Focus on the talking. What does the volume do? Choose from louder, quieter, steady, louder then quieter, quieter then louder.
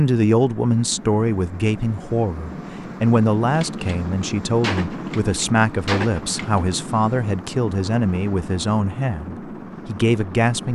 steady.